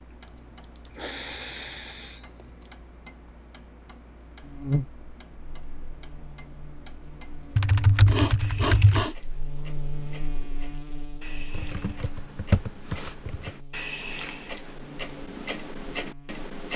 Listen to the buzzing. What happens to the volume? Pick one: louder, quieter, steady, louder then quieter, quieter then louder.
louder then quieter.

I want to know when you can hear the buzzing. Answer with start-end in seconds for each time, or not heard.
4.4-16.4.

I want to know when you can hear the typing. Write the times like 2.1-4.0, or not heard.
0.2-2.7, 7.5-9.1, 11.5-13.5.